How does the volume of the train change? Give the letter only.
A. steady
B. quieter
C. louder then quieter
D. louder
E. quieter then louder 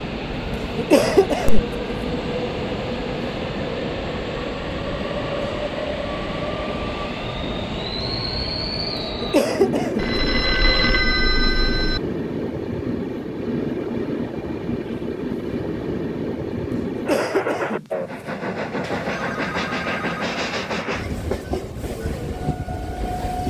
A.